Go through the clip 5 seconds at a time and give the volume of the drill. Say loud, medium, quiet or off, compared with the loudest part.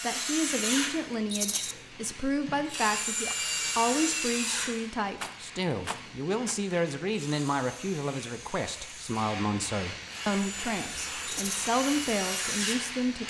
loud, quiet, loud.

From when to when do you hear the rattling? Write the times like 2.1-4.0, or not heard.
1.3-1.8, 5.2-6.5, 11.2-11.7.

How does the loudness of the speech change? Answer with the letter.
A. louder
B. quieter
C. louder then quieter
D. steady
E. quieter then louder
D.